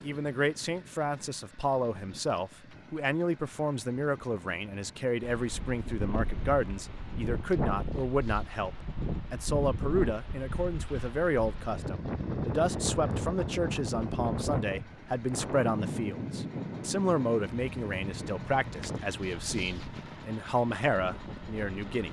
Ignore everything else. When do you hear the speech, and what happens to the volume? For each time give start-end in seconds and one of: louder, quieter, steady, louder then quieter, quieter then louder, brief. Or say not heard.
0.0-22.0 steady.